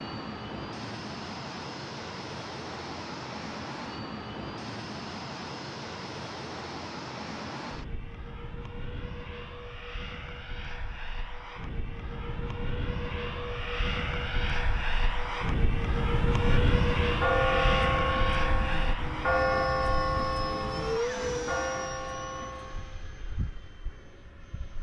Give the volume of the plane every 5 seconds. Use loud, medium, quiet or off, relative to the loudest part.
medium, medium, medium, loud, medium.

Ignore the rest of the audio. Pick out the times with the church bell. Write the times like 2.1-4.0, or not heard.
16.4-22.9.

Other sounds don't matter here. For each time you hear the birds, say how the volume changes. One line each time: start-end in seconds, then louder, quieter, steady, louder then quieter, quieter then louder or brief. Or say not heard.
not heard.